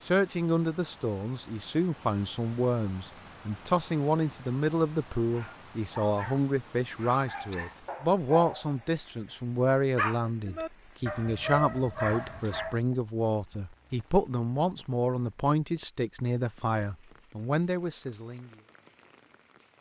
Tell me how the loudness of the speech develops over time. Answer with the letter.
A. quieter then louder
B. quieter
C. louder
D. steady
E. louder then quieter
D.